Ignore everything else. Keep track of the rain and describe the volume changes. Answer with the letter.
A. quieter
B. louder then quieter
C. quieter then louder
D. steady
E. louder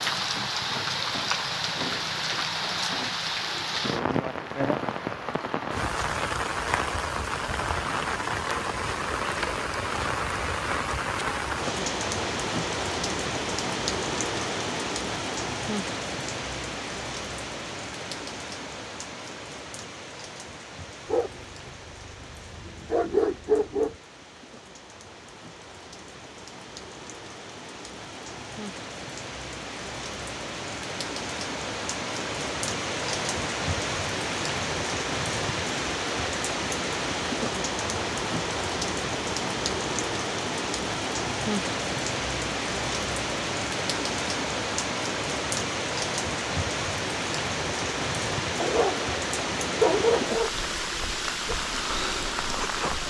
C.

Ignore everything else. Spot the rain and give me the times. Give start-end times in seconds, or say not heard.
0.0-53.0.